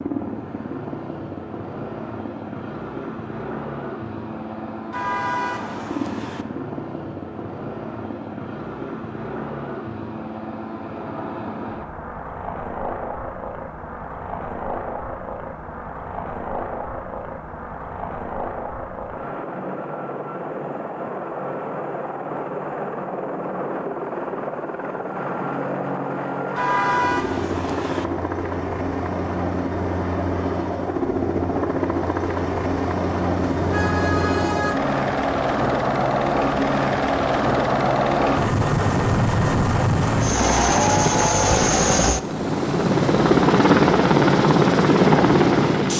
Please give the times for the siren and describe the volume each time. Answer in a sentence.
The siren can't be heard in this clip.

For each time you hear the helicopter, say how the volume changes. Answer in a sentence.
You can hear the helicopter from 0.0 to 45.9 s, getting louder.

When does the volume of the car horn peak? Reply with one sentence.
The volume of the car horn peaks at 27 seconds.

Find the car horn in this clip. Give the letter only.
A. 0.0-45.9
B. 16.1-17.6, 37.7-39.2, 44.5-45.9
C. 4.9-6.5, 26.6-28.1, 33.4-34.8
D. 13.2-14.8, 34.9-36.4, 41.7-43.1
C.